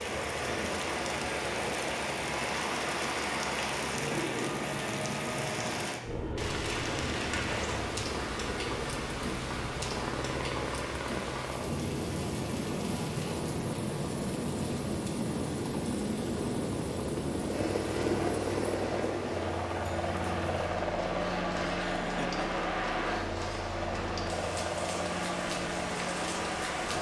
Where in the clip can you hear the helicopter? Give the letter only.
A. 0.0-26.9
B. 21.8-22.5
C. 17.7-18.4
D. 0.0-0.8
A.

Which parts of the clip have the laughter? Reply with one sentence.
You can hear the laughter from 21.8 to 22.5 s.